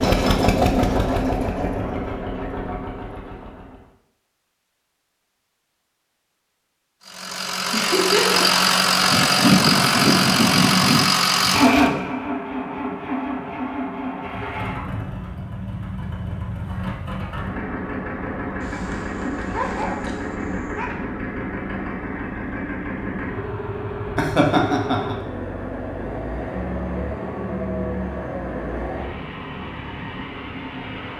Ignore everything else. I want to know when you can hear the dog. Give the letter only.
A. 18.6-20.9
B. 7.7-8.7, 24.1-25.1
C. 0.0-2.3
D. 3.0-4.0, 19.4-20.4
A.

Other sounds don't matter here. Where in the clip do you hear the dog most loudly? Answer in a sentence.
The volume of the dog peaks at 20 seconds.